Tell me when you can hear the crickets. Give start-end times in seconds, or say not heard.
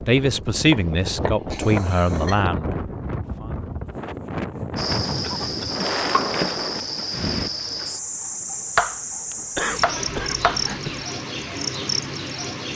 4.8-12.7.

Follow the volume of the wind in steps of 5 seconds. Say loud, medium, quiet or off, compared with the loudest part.
loud, loud, off.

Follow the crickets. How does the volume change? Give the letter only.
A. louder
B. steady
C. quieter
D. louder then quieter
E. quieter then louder
B.